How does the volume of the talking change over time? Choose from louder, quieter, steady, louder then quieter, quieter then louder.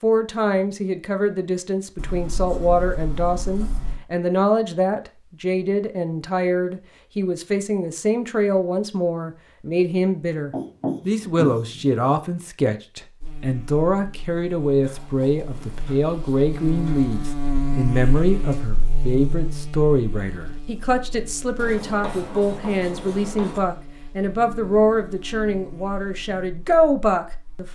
steady.